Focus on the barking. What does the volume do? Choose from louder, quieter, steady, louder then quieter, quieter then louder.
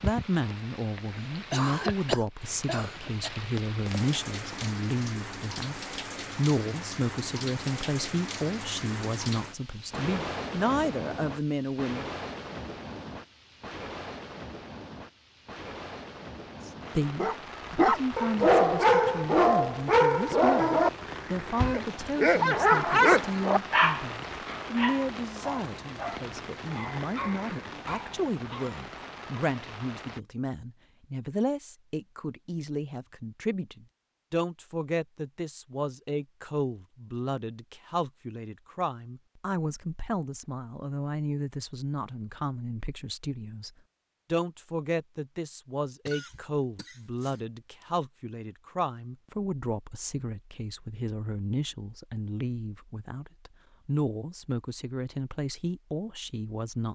quieter.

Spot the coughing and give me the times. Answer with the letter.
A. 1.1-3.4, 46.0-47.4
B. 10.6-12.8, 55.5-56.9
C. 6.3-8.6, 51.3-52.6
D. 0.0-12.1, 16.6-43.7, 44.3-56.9
A.